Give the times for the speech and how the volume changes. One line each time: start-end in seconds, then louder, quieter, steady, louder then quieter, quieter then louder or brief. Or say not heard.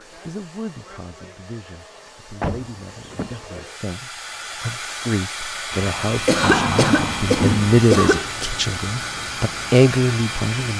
0.0-10.7 louder.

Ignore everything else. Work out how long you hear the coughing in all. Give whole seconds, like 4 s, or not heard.
2 s.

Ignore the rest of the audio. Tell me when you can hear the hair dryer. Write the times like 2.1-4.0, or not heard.
0.0-10.7.